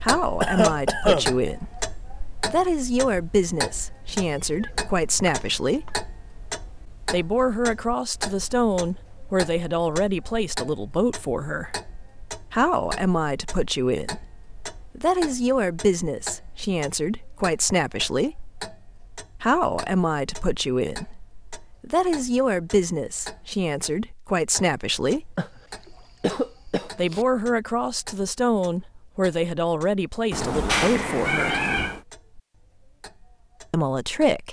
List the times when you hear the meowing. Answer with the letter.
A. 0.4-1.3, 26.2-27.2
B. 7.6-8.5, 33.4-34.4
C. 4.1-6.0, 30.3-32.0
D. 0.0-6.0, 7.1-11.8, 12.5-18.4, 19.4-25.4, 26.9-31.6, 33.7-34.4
C.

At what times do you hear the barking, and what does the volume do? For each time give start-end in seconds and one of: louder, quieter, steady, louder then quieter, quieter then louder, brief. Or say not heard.
not heard.